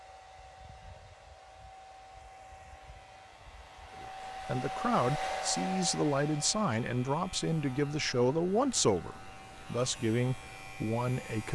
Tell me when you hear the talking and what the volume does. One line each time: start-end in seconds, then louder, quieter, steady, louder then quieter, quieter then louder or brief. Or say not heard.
4.0-11.4 steady.